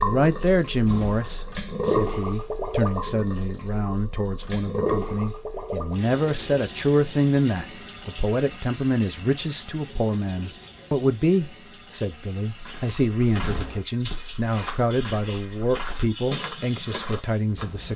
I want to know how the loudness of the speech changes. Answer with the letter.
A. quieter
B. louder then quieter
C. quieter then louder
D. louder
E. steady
E.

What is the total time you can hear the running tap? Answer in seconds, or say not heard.
18 s.